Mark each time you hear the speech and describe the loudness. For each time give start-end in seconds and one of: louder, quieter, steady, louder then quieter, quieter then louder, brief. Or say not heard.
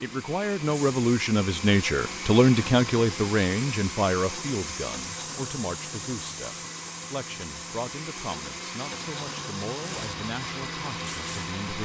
0.0-11.8 quieter.